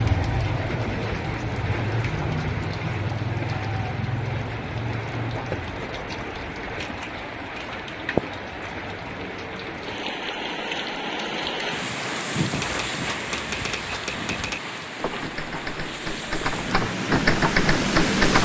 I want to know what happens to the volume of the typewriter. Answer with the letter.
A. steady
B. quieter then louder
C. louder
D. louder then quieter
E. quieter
C.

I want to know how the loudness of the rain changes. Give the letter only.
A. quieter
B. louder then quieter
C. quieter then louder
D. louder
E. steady
E.